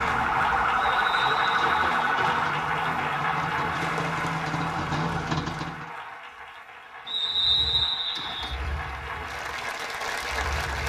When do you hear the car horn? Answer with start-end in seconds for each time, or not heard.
not heard.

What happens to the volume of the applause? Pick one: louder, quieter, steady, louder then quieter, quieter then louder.
quieter then louder.